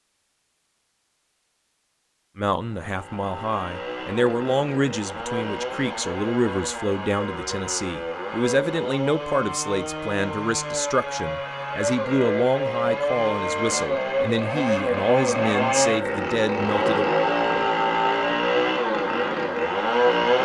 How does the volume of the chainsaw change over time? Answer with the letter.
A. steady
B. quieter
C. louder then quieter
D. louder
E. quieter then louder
D.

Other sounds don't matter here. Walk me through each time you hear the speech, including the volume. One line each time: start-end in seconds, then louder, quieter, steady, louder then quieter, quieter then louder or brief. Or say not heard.
2.4-17.1 steady.